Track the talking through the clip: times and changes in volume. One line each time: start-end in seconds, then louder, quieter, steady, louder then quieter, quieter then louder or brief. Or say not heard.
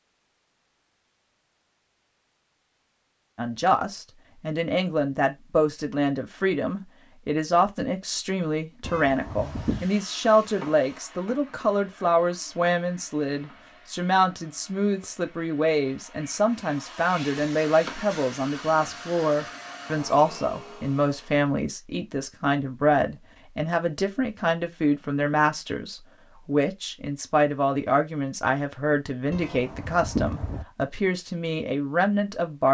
3.4-32.7 steady.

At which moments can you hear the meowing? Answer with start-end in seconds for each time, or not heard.
8.8-9.9, 29.3-30.6.